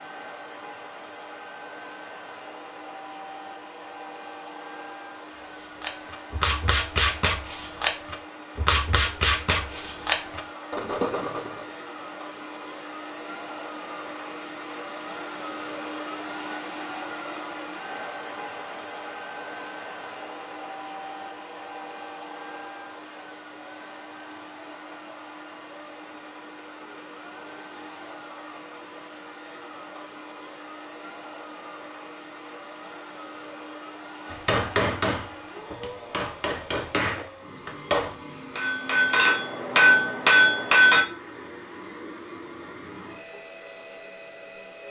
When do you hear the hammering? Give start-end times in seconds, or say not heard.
34.2-41.0.